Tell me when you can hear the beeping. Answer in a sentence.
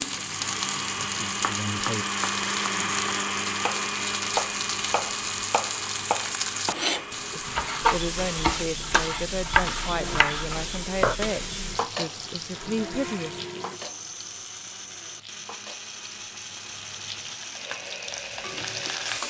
You can't hear the beeping here.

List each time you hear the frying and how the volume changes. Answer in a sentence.
The frying can be heard from 0.0 to 19.2 s, getting quieter.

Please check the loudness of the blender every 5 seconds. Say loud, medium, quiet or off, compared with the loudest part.
loud, medium, medium, medium.